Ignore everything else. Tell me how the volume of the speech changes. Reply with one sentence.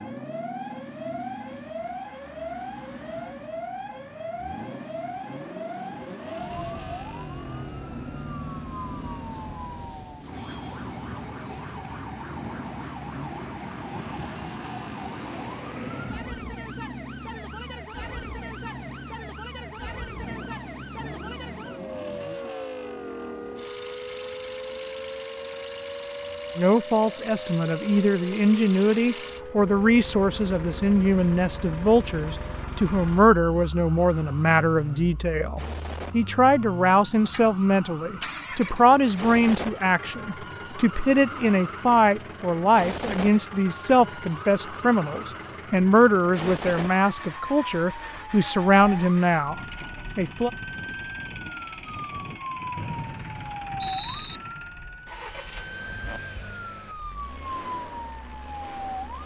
The volume of the speech stays about the same.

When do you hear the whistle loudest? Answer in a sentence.
The volume of the whistle peaks at 54 seconds.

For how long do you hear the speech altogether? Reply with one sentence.
The speech can be heard for 24 seconds in total.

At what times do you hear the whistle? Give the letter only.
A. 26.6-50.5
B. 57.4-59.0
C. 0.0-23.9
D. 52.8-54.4
D.